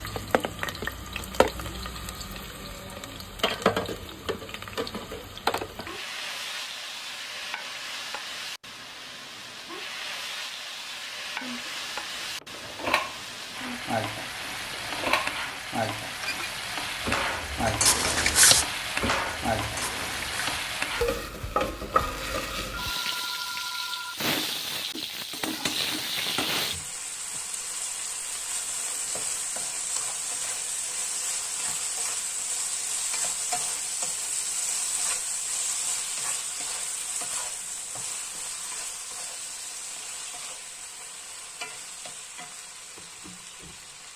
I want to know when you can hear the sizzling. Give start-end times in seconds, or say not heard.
0.0-44.1.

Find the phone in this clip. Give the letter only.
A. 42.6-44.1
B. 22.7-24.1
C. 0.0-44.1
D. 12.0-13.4
B.